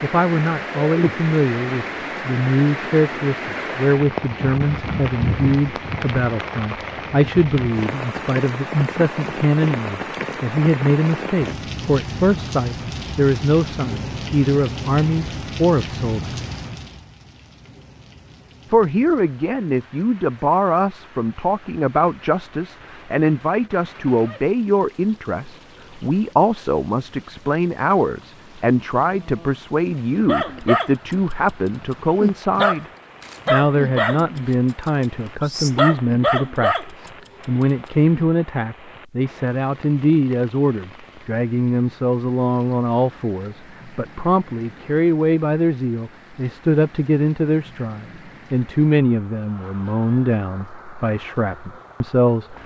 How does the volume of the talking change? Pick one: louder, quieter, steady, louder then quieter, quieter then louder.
steady.